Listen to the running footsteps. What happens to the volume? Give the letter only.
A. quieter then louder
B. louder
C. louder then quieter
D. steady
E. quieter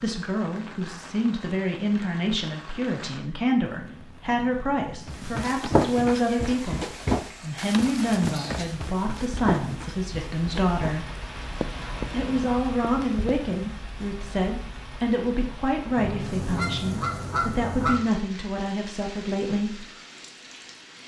E.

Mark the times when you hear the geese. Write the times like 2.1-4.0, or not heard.
15.9-18.1.